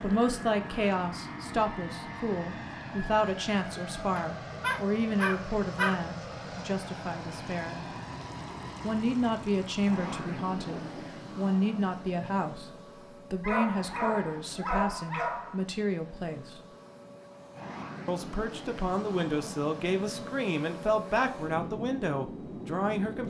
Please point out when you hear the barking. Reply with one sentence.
The barking can be heard from 4.2 to 6.0 s and from 13.4 to 15.7 s.